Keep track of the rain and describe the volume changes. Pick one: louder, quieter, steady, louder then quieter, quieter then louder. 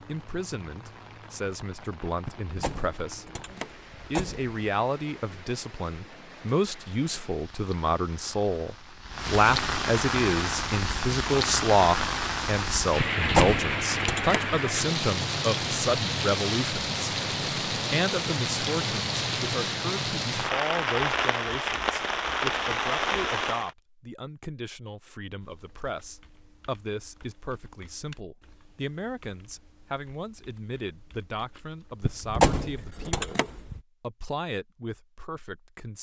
louder.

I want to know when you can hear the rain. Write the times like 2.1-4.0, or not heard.
0.0-23.8.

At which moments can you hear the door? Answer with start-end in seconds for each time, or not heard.
2.2-4.5, 12.9-14.6, 32.0-33.8.